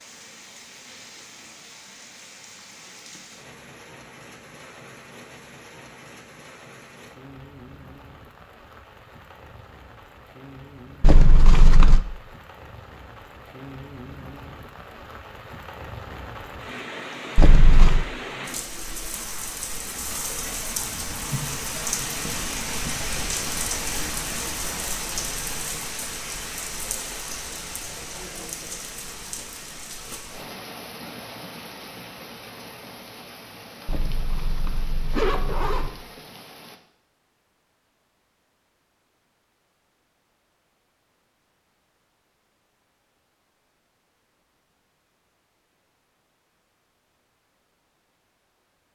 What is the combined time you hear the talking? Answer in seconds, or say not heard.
not heard.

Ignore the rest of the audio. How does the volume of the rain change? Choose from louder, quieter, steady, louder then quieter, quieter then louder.
louder then quieter.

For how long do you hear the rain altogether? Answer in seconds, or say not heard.
37 s.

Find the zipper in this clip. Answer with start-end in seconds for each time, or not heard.
11.0-12.0, 17.4-18.1, 33.9-35.9.